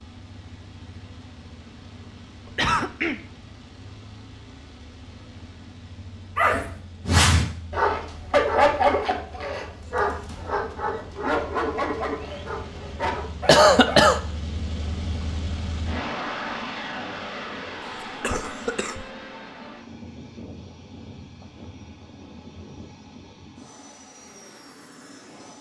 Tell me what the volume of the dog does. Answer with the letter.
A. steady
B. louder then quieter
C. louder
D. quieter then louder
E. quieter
E.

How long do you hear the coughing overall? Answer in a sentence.
You can hear the coughing for 3 seconds altogether.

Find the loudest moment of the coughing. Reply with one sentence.
The volume of the coughing peaks at 14 seconds.